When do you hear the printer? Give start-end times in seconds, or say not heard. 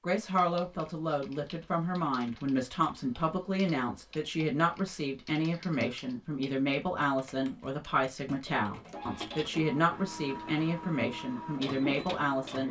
8.7-12.6.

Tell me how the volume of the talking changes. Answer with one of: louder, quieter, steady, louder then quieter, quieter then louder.
steady.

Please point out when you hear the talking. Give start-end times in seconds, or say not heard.
0.0-12.6.